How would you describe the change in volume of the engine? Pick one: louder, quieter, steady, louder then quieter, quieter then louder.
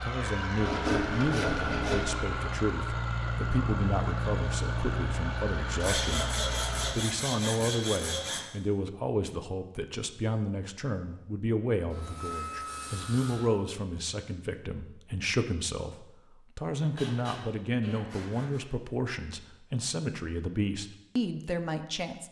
steady.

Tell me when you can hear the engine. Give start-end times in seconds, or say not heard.
0.0-7.0.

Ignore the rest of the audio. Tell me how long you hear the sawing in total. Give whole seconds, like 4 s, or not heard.
8 s.